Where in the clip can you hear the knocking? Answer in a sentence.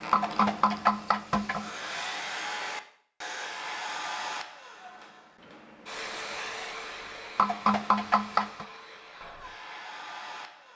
You can hear the knocking from 0.1 to 1.7 s and from 7.3 to 8.7 s.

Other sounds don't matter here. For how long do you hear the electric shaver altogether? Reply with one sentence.
The electric shaver can't be heard in this clip.